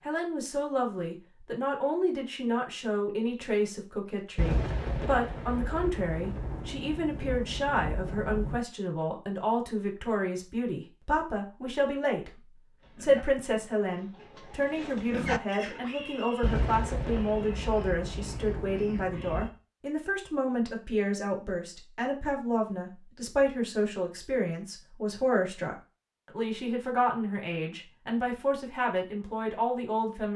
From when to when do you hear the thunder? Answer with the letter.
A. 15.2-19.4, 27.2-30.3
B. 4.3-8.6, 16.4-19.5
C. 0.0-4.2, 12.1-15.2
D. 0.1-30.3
B.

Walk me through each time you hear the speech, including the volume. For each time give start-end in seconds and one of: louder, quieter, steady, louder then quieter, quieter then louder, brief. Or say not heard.
0.1-30.3 steady.